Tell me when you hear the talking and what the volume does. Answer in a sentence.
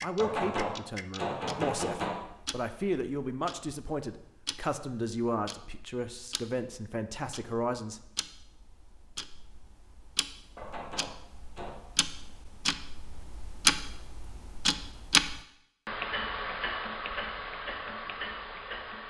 You can hear the talking from 0.0 to 8.0 s, at a steady volume.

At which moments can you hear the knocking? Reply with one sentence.
You can hear the knocking from 0.1 to 2.2 s and from 10.6 to 11.8 s.